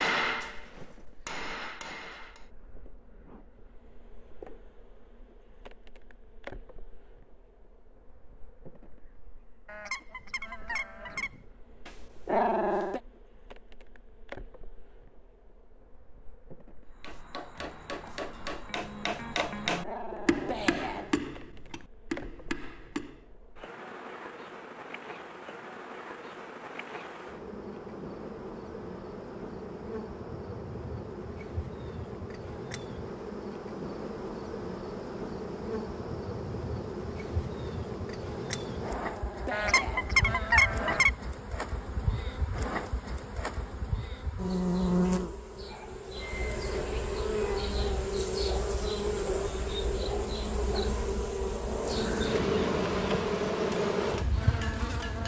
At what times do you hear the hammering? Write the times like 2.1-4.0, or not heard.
0.0-2.5, 17.0-23.2, 51.5-55.2.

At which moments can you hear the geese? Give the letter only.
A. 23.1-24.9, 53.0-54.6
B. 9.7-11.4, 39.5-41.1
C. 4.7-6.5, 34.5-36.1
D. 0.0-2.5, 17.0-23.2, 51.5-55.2
B.